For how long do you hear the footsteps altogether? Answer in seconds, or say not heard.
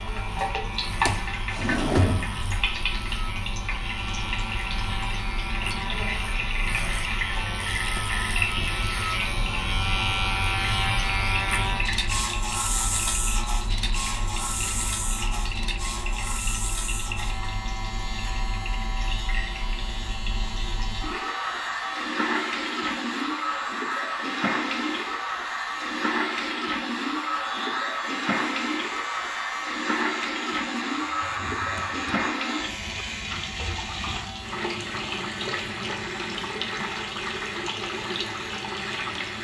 not heard.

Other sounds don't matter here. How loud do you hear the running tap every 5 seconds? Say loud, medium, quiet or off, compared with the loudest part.
loud, loud, medium, medium, loud, loud, loud, loud.